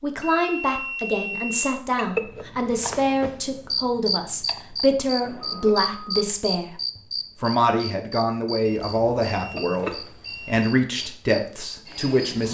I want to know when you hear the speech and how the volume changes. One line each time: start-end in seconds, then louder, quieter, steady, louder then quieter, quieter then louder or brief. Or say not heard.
0.0-12.4 steady.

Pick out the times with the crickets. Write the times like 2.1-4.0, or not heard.
1.9-12.4.